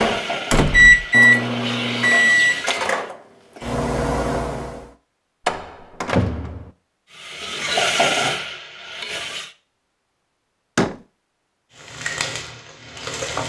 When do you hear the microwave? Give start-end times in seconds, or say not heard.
0.0-4.9.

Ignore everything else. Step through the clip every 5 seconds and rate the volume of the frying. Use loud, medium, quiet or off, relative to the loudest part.
medium, loud, medium.